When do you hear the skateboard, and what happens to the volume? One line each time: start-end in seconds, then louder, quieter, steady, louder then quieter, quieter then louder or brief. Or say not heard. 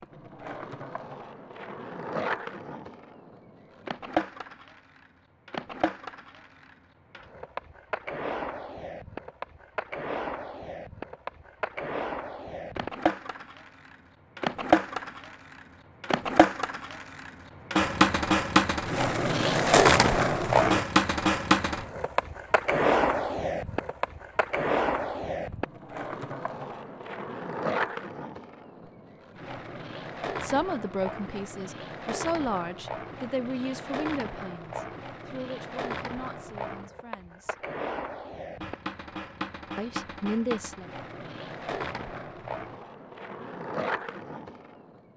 0.0-45.1 louder then quieter.